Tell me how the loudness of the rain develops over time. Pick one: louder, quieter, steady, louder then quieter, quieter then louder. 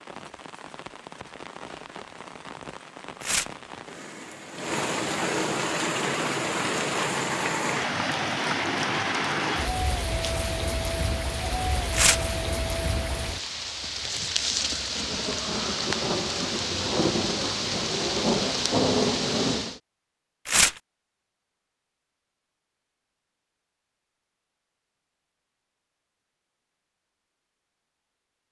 louder.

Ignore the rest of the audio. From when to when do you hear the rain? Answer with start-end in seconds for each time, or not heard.
0.0-19.8.